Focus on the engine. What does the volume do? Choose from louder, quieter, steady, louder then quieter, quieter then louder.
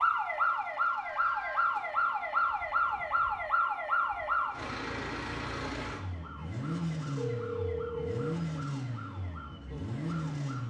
louder.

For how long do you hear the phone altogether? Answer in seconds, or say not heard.
2 s.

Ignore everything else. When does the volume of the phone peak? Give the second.
8 s.